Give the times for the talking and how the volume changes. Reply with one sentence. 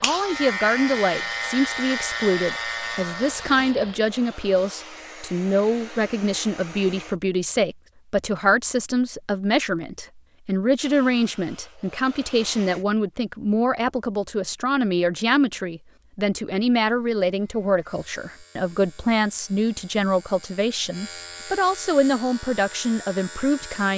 You can hear the talking from 0.0 to 23.9 s, at a steady volume.